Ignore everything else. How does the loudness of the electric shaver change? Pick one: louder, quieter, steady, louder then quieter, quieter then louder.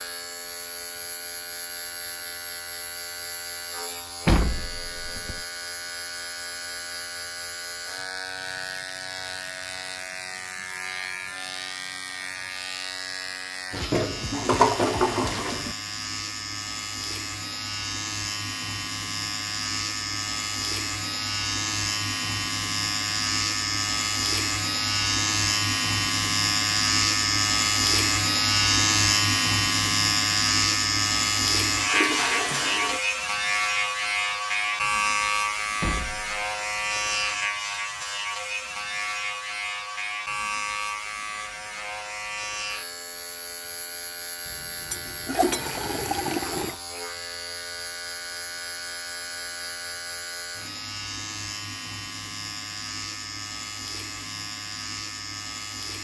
louder then quieter.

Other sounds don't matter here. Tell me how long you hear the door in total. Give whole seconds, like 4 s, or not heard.
2 s.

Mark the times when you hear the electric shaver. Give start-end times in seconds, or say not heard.
0.0-56.0.